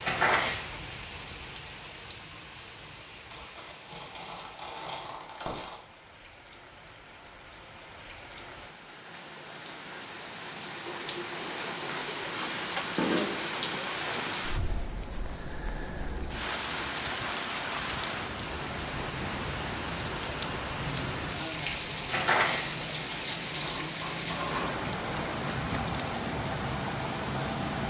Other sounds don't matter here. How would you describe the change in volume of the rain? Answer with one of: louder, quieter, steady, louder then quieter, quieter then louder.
louder.